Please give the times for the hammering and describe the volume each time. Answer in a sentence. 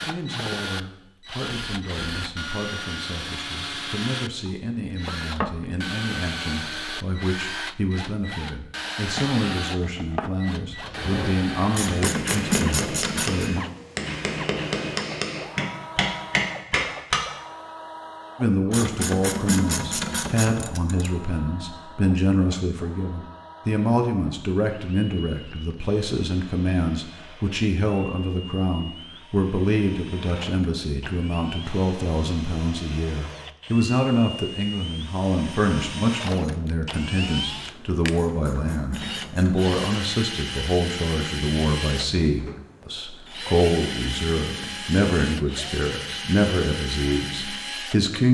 You can hear the hammering from 10.6 to 17.2 s, getting louder.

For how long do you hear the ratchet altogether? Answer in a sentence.
The ratchet can be heard for 6 seconds in total.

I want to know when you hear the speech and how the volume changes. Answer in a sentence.
The speech can be heard from 0.0 to 13.7 s, getting louder; and from 18.4 to 48.2 s, at a steady volume.